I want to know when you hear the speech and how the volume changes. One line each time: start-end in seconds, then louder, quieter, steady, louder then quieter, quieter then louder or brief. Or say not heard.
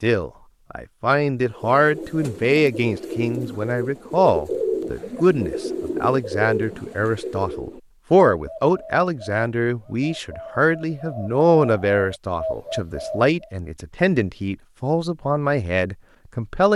0.0-16.7 steady.